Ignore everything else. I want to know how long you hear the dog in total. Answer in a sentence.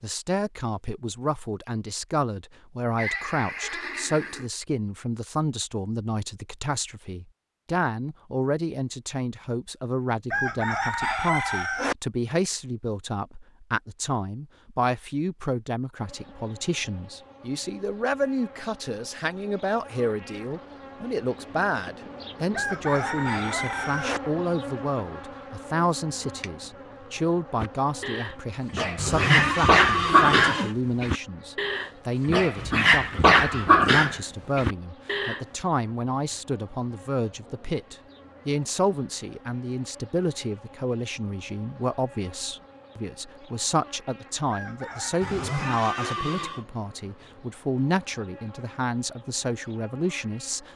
The dog can be heard for 8 seconds in total.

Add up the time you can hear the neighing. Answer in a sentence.
The neighing can be heard for 5 seconds in total.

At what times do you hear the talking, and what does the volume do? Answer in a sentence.
You can hear the talking from 0.0 to 50.7 s, at a steady volume.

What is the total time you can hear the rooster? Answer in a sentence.
The rooster can be heard for 5 seconds in total.